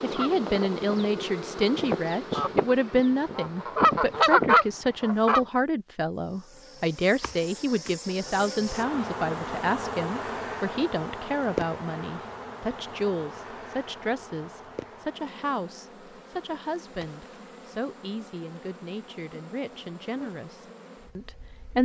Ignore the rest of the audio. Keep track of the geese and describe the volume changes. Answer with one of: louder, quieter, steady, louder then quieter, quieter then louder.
louder.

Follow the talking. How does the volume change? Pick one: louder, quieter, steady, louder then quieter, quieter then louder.
quieter.